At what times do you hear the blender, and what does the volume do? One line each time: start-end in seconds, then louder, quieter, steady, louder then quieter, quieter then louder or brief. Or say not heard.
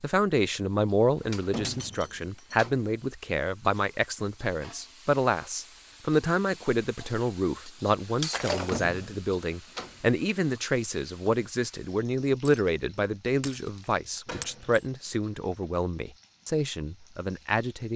not heard.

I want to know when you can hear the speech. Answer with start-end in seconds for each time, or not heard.
0.0-17.9.